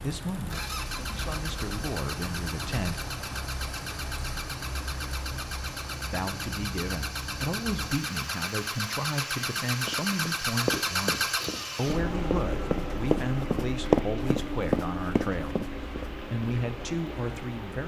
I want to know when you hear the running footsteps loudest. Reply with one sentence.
The volume of the running footsteps peaks at 14 seconds.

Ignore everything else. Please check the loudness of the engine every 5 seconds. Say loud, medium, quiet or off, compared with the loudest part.
medium, loud, loud, medium.